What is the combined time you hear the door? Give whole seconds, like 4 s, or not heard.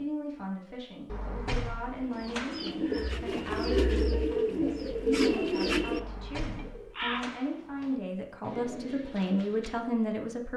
4 s.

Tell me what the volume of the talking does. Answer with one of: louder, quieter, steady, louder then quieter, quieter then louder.
louder.